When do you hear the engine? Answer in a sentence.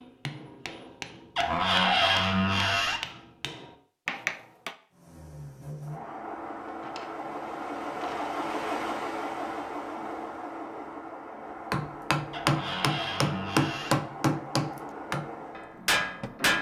You can hear the engine from 4.9 to 16.5 s.